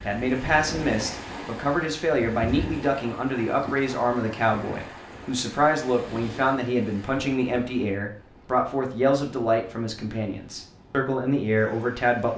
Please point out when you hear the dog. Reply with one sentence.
The dog can't be heard in this clip.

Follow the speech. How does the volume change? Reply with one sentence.
The loudness of the speech stays about the same.